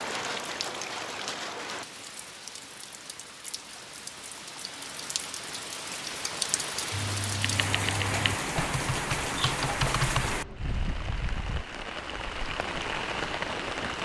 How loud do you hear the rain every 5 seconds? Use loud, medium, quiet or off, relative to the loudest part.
medium, loud, loud.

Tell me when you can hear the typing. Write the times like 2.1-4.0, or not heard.
6.9-10.6.